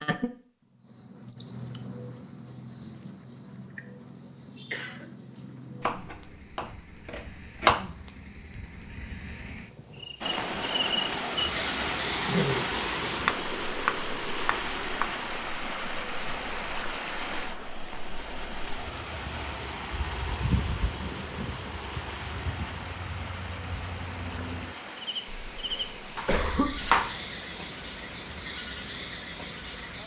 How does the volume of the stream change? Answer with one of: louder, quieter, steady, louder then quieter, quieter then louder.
quieter.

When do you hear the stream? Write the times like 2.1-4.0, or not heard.
10.2-30.0.